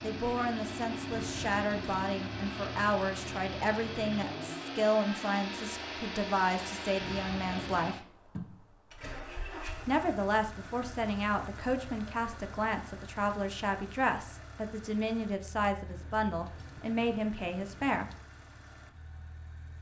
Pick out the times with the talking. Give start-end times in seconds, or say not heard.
0.0-8.0, 9.8-18.1.